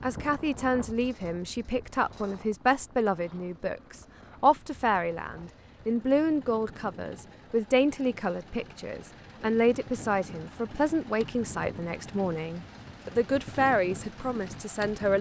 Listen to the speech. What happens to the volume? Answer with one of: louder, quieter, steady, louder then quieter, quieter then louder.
steady.